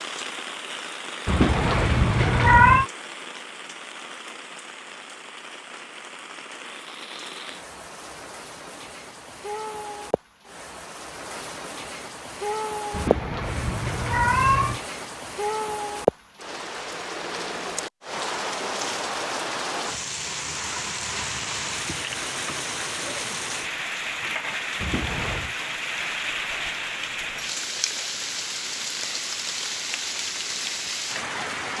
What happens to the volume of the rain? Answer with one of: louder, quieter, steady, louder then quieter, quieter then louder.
louder.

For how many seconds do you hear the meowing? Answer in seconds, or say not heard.
4 s.